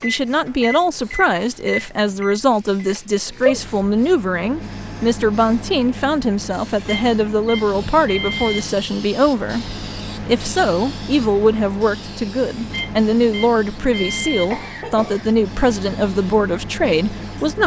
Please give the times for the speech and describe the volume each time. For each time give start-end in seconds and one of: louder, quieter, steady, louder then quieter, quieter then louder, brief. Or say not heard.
0.0-17.6 steady.